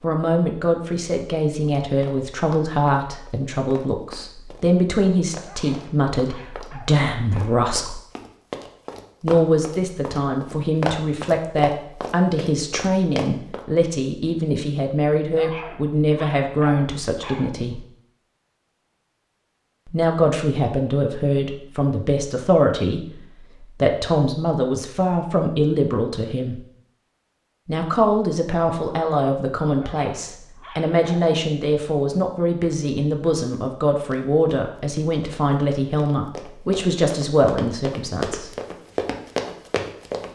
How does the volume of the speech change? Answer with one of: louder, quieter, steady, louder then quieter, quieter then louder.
steady.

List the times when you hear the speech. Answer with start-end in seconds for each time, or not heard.
0.0-8.0, 9.2-17.8, 19.9-26.6, 27.6-38.5.